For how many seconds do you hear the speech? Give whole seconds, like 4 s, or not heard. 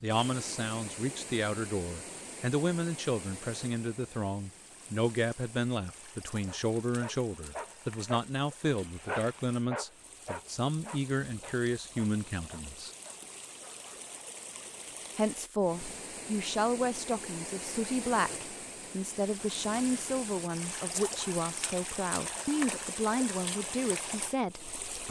23 s.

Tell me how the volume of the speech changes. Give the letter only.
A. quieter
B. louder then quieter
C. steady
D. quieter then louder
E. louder
C.